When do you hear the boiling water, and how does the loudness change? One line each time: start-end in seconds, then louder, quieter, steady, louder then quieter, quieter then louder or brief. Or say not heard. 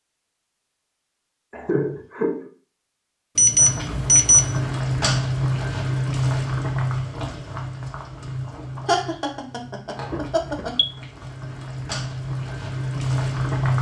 3.5-13.7 quieter then louder.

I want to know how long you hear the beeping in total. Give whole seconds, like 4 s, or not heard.
2 s.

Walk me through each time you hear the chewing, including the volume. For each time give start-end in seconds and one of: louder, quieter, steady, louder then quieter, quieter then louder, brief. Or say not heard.
not heard.